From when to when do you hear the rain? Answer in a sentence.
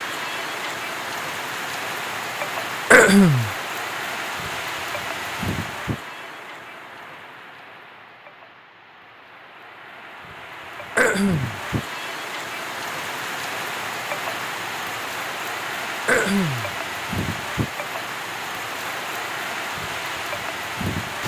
You can hear the rain from 0.0 to 21.2 s.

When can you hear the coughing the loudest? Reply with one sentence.
The loudest moment of the coughing is at 3 seconds.